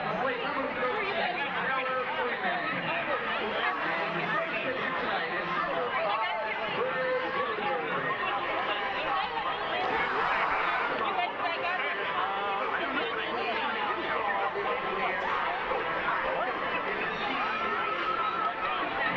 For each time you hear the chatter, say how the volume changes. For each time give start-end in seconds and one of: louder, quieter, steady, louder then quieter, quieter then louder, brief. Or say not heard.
0.0-19.1 steady.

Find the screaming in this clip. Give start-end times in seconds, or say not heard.
3.5-4.3, 9.8-11.1, 15.0-15.4.